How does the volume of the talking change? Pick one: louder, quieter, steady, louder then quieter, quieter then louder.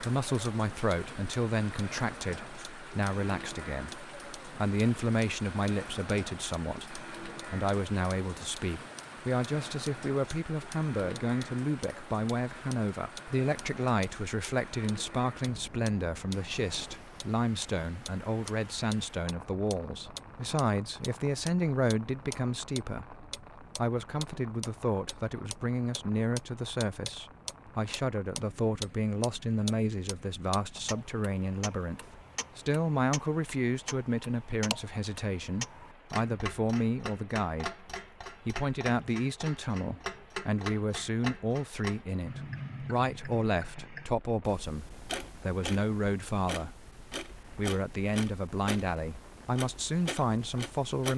steady.